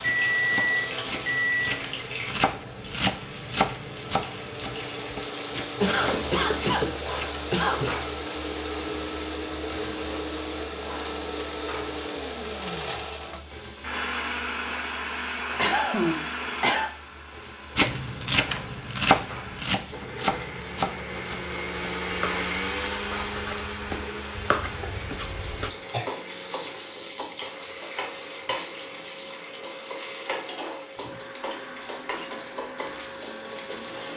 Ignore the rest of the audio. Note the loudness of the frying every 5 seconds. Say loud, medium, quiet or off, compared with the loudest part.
loud, loud, medium, medium, medium, loud, loud.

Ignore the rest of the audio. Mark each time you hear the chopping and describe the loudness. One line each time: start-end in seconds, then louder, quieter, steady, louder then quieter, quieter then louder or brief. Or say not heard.
0.0-8.0 louder then quieter
17.8-25.7 quieter then louder.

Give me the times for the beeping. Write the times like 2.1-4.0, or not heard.
0.0-1.8.